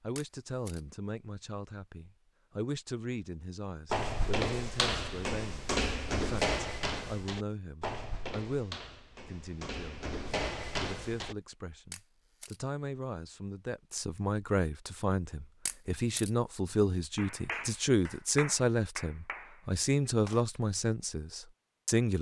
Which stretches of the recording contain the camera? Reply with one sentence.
The camera can be heard from 0.1 to 0.8 s, from 11.9 to 12.6 s and from 15.7 to 16.3 s.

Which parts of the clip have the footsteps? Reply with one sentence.
You can hear the footsteps from 3.9 to 11.3 s.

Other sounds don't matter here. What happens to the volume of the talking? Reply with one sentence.
The loudness of the talking goes up.